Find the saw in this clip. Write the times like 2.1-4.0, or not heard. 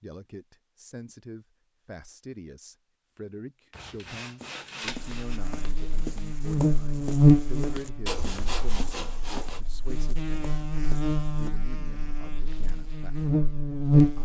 3.8-5.4, 8.1-9.6.